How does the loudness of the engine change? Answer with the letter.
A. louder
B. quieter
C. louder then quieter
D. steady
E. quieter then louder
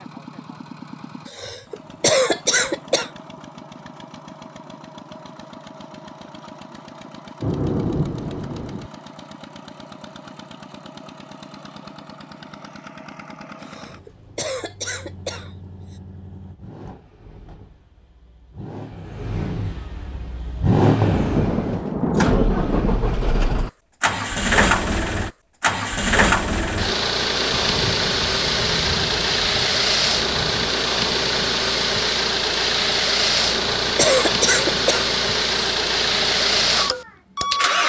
A.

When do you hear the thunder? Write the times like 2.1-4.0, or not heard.
7.4-8.9, 21.1-23.1, 27.5-30.7.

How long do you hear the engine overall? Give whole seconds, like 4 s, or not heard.
38 s.